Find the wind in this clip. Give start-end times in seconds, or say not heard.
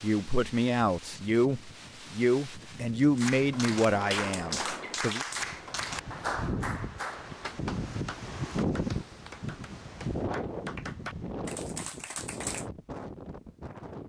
0.0-14.0.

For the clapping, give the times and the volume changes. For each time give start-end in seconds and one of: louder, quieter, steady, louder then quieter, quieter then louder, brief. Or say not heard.
3.1-12.7 quieter then louder.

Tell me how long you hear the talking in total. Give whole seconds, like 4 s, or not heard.
5 s.